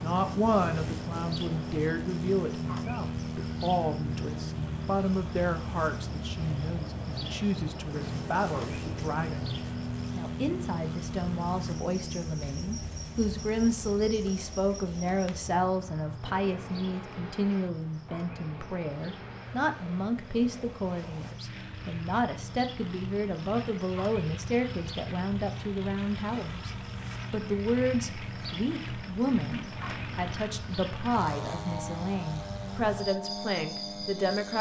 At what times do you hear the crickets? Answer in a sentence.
The crickets can be heard from 0.0 to 34.5 s.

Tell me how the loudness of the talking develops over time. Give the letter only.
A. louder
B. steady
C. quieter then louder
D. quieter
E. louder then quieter
B.